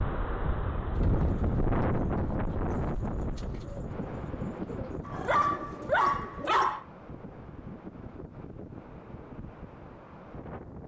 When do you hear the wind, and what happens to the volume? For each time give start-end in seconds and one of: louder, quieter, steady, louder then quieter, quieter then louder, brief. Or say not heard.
0.0-10.8 quieter.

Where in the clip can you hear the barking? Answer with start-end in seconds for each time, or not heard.
5.0-6.8.